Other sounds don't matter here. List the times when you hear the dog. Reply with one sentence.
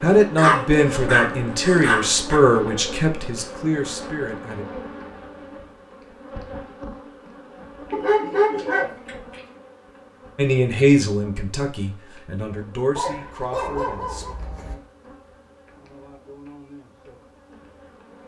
You can hear the dog from 0.3 to 2.4 s, from 7.9 to 9.4 s and from 12.9 to 14.8 s.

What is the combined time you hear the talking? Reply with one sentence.
The talking can be heard for 9 seconds in total.